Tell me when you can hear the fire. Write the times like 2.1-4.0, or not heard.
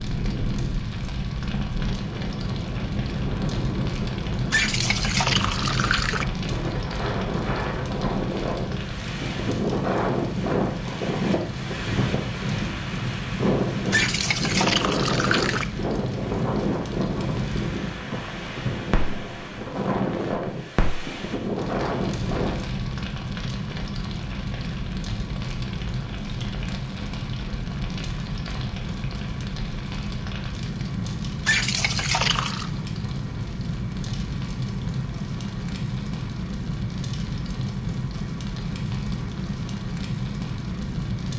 0.0-41.3.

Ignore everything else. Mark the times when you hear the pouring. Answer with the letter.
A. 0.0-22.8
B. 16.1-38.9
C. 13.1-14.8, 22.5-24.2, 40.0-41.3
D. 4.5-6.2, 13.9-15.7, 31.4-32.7
D.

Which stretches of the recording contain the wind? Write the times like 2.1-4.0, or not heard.
0.0-22.8.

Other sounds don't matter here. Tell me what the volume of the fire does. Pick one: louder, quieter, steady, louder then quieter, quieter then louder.
steady.